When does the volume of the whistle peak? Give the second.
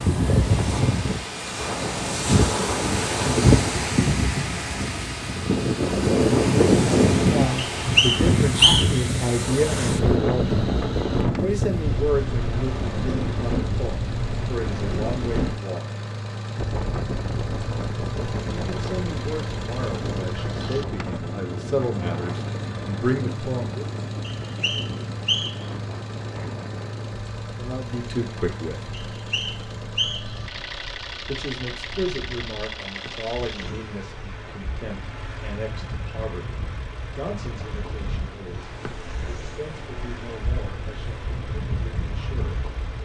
9 s.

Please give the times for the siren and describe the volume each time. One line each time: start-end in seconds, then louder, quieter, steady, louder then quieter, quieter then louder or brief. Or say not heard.
not heard.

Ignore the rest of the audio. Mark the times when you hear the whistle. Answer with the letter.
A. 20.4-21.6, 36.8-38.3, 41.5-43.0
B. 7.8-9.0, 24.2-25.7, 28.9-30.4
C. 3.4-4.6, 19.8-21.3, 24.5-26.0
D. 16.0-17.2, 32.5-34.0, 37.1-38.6
B.